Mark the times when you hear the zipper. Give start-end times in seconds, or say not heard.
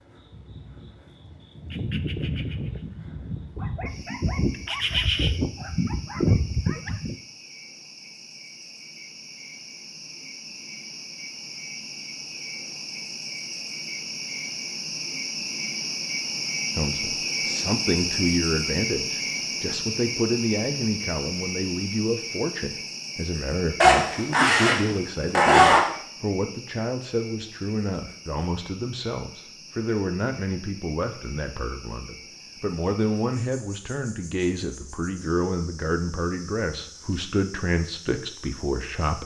23.8-25.8.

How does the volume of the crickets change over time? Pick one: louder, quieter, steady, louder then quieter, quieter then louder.
louder then quieter.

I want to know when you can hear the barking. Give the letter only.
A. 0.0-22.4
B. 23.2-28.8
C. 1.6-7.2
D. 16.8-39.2
C.